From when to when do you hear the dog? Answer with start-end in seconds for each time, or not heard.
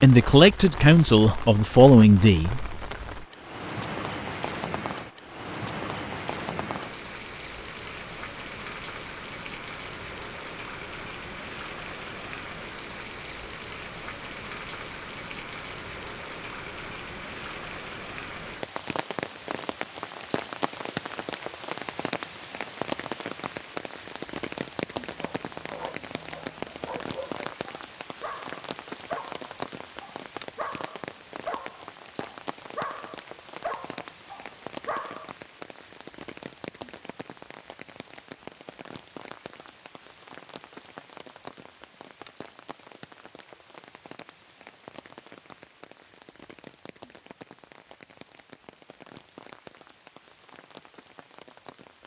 25.0-35.3.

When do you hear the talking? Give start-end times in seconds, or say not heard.
0.0-2.6.